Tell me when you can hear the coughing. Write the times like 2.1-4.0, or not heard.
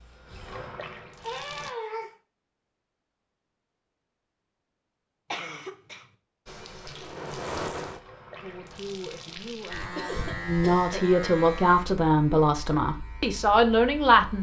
1.2-2.1, 5.3-6.0, 9.9-11.1.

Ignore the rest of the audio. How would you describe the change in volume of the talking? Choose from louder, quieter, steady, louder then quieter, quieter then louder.
louder.